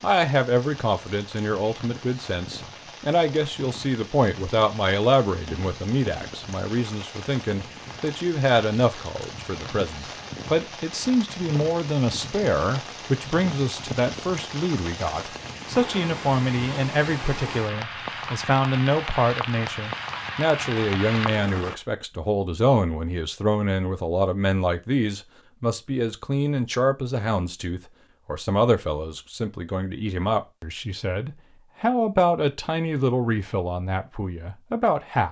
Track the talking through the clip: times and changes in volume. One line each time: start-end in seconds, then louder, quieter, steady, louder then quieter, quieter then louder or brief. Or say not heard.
0.0-35.2 steady.